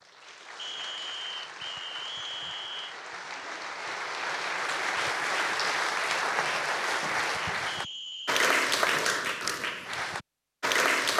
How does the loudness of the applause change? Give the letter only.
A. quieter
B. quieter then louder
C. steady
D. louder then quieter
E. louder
E.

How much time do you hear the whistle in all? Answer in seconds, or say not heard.
3 s.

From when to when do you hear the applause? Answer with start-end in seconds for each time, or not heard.
0.0-11.1.